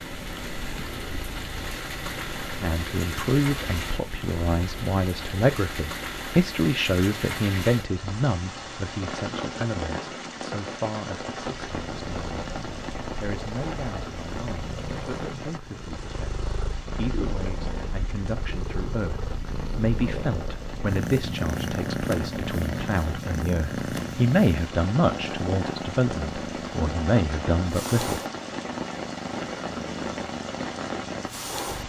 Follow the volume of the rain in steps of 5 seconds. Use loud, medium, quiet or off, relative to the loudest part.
loud, loud, loud, medium, medium, loud, loud.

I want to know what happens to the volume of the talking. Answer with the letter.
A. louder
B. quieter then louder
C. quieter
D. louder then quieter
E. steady
B.